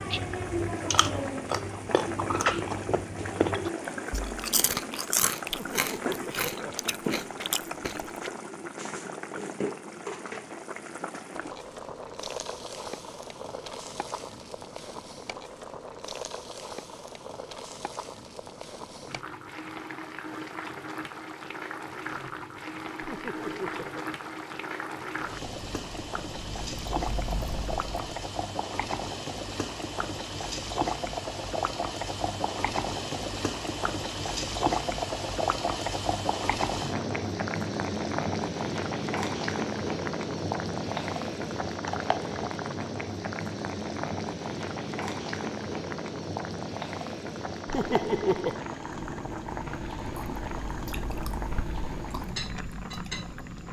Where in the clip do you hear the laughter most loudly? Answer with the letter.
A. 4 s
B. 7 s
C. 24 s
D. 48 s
D.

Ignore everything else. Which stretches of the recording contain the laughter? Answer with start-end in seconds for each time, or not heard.
5.5-7.0, 23.0-24.1, 47.6-48.6.